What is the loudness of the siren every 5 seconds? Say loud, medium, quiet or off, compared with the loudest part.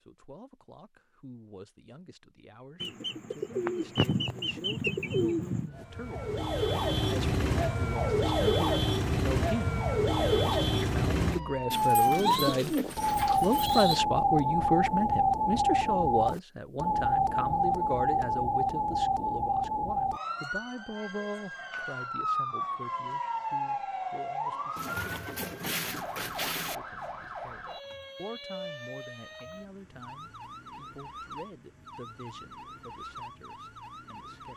off, loud, loud, loud, medium, quiet, quiet.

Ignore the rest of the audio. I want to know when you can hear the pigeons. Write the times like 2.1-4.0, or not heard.
2.8-5.7, 11.7-14.0, 24.8-26.8.